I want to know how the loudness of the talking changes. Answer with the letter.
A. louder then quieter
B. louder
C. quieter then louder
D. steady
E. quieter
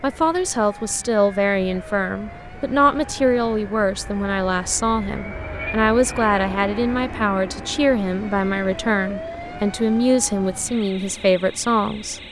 D.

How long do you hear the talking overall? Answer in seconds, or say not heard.
12 s.